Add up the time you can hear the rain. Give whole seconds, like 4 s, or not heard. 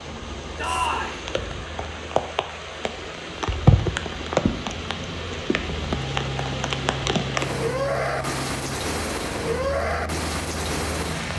11 s.